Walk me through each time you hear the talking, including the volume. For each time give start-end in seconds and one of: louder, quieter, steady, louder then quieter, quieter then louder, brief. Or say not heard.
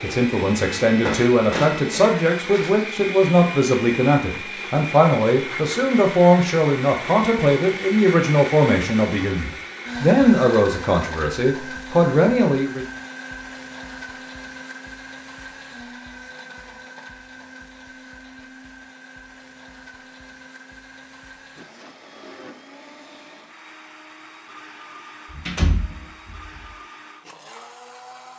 0.0-12.8 steady.